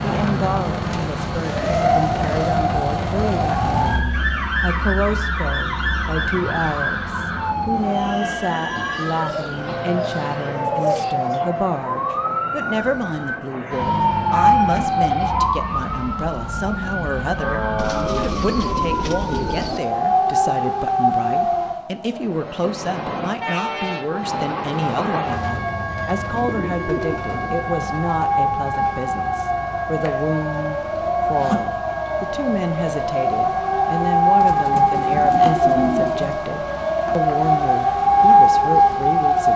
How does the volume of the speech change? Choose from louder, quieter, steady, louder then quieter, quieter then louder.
steady.